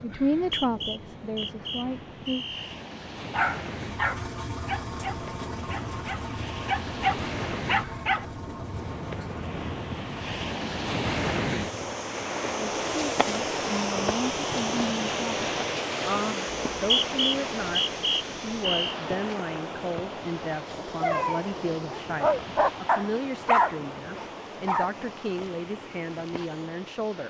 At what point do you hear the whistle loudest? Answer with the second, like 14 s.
17 s.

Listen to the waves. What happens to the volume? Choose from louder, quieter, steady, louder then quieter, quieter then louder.
louder then quieter.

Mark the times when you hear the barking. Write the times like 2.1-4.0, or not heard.
3.3-8.2, 21.0-24.9.